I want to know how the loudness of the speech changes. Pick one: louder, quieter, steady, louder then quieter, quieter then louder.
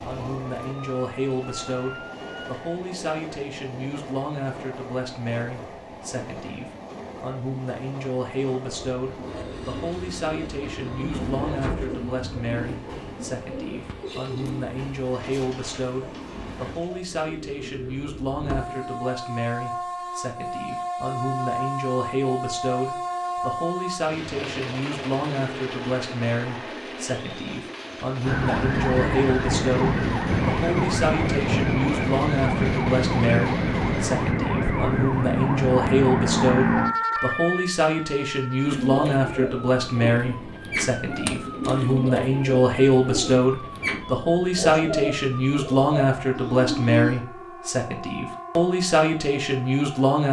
louder.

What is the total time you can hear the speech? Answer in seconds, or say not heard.
50 s.